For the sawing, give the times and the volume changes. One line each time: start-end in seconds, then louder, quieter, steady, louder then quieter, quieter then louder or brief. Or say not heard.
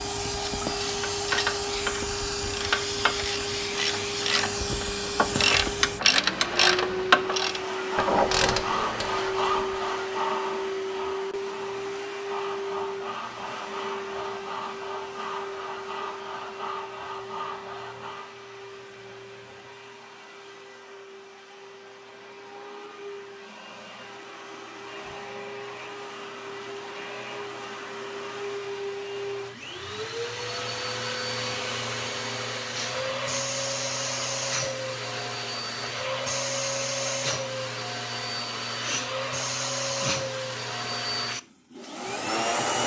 7.2-18.4 quieter.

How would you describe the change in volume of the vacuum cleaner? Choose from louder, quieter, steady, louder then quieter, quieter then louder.
quieter then louder.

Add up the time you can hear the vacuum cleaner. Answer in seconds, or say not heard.
43 s.